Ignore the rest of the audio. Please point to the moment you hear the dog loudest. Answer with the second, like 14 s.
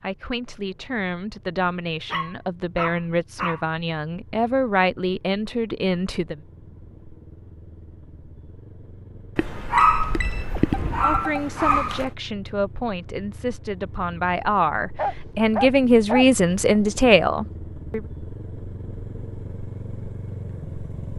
10 s.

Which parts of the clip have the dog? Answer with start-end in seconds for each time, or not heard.
2.1-3.6, 9.3-12.1, 14.9-16.9.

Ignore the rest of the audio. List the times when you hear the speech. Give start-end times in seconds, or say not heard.
0.0-6.4, 10.9-18.0.